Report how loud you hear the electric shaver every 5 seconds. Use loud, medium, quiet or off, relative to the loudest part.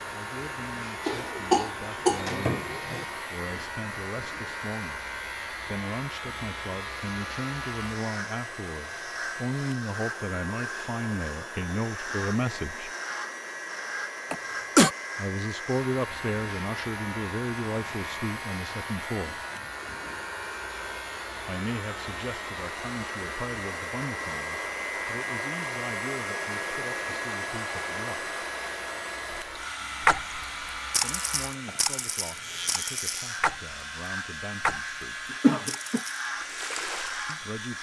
loud, loud, loud, loud, loud, medium, loud, loud.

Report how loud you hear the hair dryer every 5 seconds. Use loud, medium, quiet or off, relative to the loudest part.
medium, medium, medium, medium, loud, loud, medium, medium.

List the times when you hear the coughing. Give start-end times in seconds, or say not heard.
1.1-3.0, 14.3-14.9, 35.4-36.0.